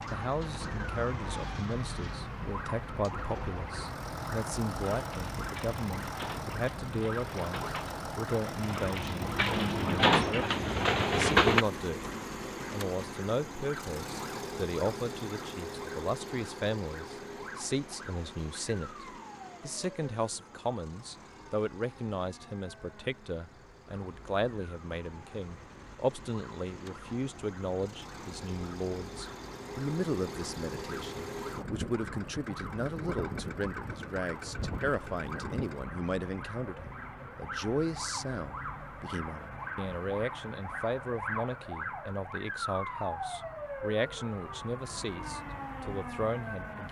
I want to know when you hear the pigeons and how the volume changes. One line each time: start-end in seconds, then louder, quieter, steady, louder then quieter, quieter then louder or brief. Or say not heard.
4.8-11.7 louder.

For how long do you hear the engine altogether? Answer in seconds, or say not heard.
36 s.